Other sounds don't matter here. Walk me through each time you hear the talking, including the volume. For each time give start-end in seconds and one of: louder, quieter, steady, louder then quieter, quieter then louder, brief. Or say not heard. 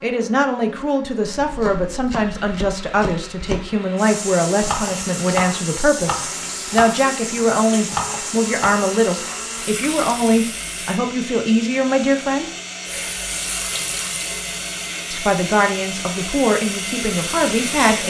0.0-12.5 steady
15.1-18.0 brief.